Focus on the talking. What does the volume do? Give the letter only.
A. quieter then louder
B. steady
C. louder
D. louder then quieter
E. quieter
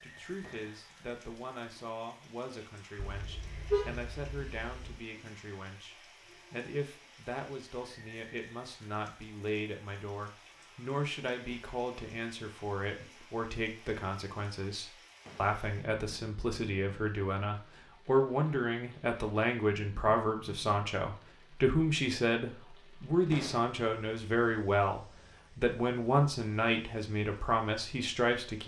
C.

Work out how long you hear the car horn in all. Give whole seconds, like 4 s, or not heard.
2 s.